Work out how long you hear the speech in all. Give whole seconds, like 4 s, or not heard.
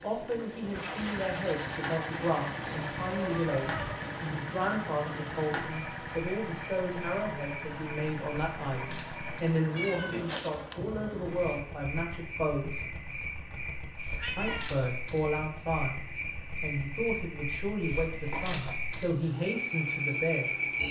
19 s.